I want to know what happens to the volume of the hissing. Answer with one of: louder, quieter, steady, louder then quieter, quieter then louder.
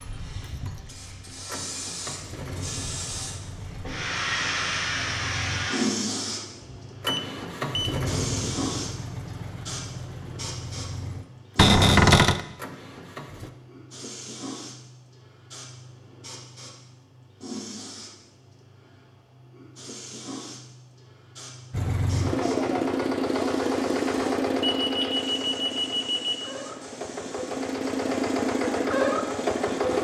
quieter.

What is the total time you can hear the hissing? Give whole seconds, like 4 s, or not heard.
30 s.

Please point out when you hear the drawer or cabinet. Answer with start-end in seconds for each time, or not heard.
11.6-12.4.